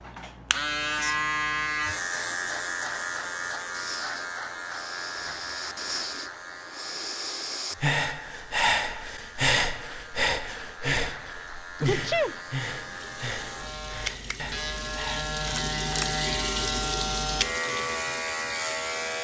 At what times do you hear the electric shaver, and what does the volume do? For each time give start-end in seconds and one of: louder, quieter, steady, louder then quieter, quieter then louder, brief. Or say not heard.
0.0-19.1 quieter then louder.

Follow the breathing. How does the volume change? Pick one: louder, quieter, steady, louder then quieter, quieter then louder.
louder then quieter.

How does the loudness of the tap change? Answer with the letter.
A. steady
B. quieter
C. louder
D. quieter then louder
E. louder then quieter
E.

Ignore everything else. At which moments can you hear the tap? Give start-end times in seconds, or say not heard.
12.7-19.1.